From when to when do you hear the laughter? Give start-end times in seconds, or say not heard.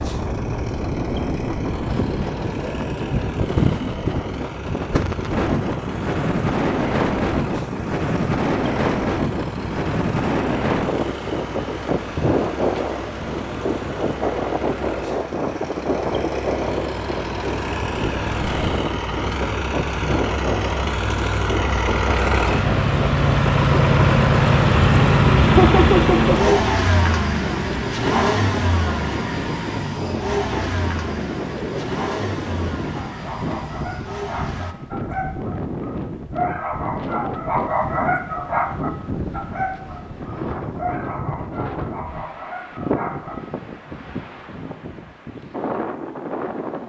25.4-26.6.